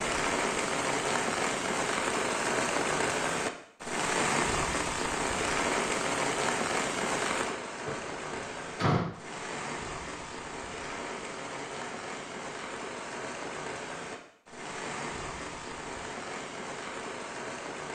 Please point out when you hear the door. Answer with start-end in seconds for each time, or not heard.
7.8-9.1.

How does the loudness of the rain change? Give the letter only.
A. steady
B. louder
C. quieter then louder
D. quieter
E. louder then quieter
D.